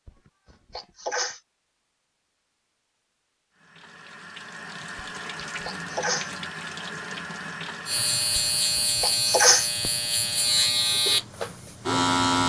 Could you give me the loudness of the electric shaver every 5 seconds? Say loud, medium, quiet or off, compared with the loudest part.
off, loud, loud.